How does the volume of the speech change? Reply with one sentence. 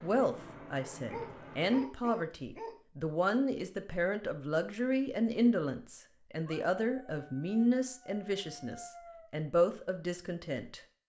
The volume of the speech stays about the same.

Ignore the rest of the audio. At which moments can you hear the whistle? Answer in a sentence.
You can't hear the whistle here.